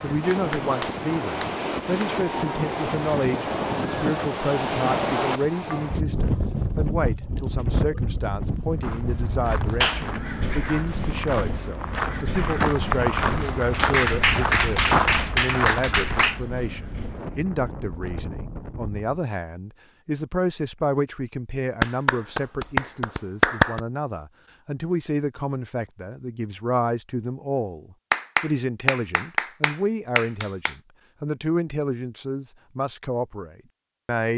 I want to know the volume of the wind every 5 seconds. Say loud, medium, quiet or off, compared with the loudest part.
loud, loud, medium, medium, off, off, off.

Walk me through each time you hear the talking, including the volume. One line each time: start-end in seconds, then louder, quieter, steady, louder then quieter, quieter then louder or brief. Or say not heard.
0.0-34.3 steady.